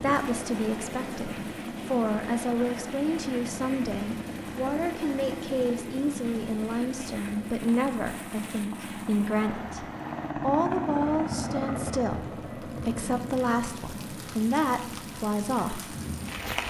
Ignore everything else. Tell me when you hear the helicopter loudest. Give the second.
11 s.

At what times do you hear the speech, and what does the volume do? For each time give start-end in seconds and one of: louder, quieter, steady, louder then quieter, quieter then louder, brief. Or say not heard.
0.0-15.9 steady.